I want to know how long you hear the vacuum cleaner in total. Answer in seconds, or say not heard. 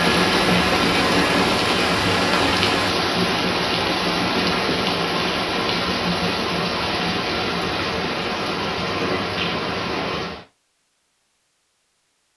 3 s.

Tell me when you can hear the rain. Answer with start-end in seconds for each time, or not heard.
0.0-10.4.